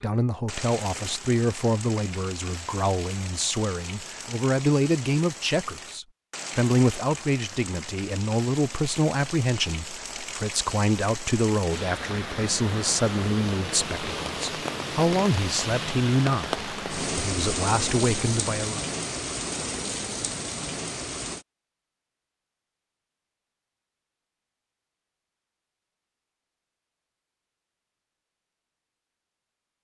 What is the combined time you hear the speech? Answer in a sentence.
The speech can be heard for 19 seconds in total.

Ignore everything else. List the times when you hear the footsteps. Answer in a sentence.
The footsteps can't be heard in this clip.